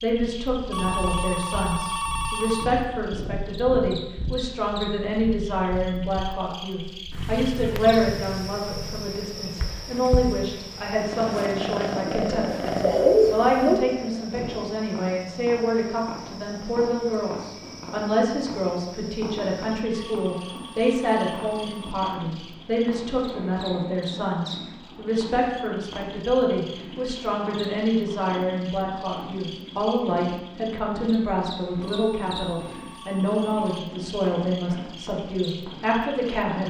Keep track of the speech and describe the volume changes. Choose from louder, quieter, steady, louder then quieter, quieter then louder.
steady.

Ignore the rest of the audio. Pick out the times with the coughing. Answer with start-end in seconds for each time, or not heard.
12.1-13.8.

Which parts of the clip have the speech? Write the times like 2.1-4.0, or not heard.
0.0-36.6.